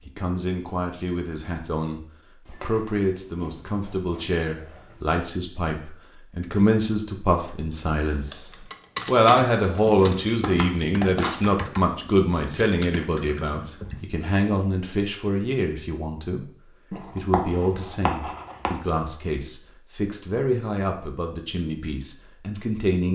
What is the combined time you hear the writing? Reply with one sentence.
The writing can be heard for 6 seconds in total.